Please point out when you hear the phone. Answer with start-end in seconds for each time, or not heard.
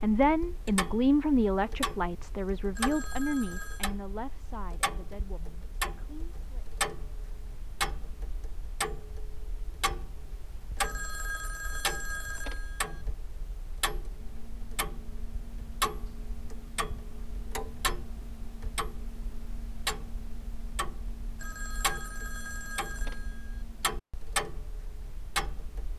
2.8-3.9, 10.8-13.1, 21.4-23.6.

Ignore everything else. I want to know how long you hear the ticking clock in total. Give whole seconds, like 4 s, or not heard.
26 s.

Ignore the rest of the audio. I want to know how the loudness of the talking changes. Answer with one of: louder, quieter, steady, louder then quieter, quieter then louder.
quieter.